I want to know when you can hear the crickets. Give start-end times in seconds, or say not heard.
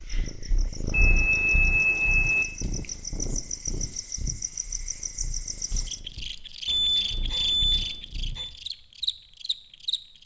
0.0-10.2.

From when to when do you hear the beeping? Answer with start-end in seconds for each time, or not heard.
0.9-2.5, 6.7-8.5.